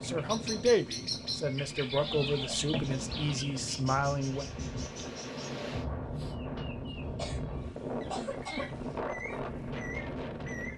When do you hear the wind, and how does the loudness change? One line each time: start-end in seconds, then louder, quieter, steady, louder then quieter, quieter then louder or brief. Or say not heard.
0.0-10.7 louder.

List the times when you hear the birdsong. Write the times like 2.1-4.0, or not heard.
0.0-10.7.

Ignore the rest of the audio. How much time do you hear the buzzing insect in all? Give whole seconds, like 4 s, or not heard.
not heard.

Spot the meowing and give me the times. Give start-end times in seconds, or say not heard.
2.0-3.5.